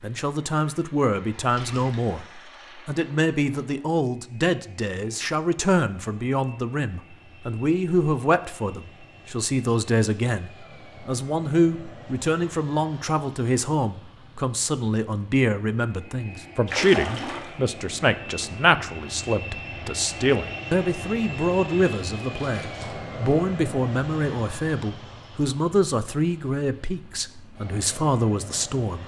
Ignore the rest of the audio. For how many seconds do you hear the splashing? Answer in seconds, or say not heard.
2 s.